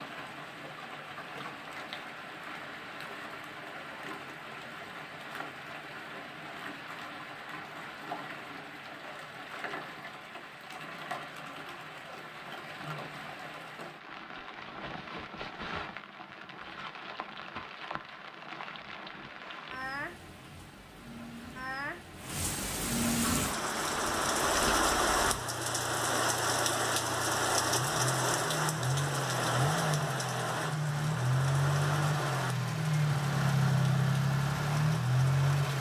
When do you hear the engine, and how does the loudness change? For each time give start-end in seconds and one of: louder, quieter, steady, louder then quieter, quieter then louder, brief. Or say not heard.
23.2-35.7 louder.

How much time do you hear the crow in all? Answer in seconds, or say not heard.
not heard.